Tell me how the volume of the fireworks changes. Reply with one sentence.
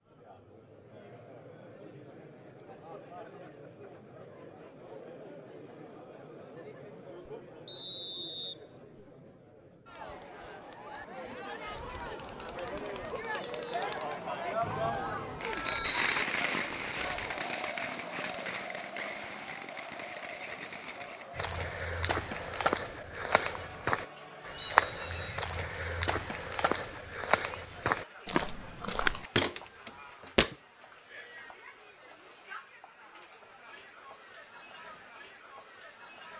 The volume of the fireworks goes down.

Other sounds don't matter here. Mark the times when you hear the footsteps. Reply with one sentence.
You can hear the footsteps from 21.3 to 30.6 s.